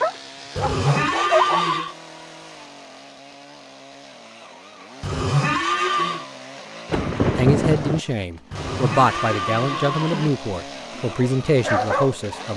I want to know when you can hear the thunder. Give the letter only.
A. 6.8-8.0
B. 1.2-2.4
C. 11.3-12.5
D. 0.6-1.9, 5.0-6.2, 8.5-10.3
A.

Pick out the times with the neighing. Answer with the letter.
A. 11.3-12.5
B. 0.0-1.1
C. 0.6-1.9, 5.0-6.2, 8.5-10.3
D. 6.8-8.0
C.